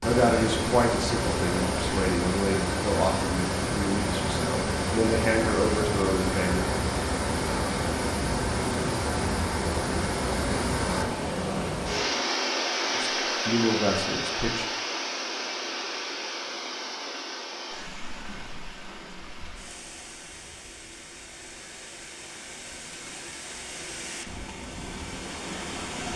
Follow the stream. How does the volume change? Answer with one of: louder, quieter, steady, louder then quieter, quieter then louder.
quieter.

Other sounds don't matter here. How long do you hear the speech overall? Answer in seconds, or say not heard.
8 s.